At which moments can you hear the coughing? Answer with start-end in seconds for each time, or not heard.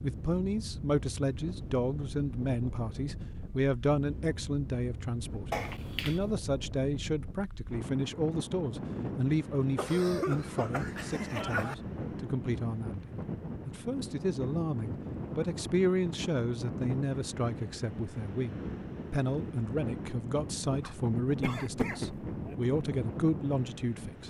5.5-6.2, 9.8-11.8, 20.8-22.6.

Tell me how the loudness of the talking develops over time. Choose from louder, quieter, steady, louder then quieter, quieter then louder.
steady.